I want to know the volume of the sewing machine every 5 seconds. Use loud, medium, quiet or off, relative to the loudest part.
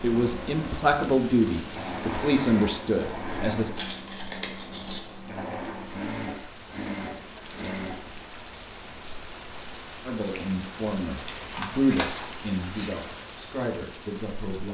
loud, loud, off.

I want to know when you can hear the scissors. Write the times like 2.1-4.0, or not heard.
3.2-5.0, 11.2-13.1.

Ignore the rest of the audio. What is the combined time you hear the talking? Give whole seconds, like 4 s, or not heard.
8 s.